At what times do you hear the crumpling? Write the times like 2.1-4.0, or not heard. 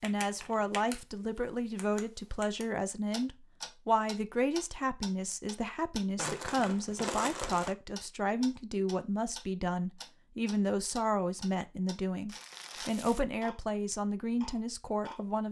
0.1-0.8, 6.2-7.8, 12.2-13.2.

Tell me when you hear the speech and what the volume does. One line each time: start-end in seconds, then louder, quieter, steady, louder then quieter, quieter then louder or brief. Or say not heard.
0.0-15.4 steady.